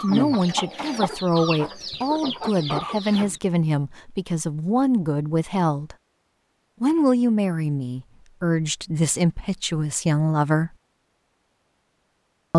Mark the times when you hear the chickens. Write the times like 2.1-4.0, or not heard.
0.0-3.4.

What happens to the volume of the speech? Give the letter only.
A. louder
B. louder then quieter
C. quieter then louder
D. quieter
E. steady
E.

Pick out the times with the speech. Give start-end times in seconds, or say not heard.
0.0-6.0, 6.8-10.7.